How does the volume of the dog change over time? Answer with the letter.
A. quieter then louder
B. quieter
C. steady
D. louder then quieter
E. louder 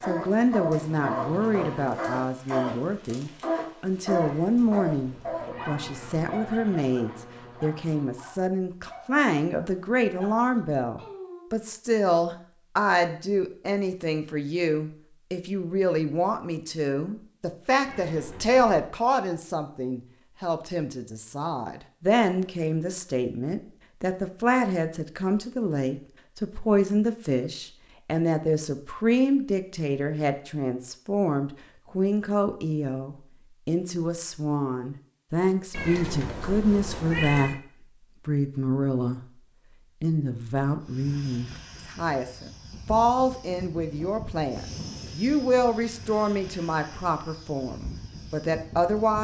B.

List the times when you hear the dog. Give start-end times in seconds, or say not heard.
0.0-11.4.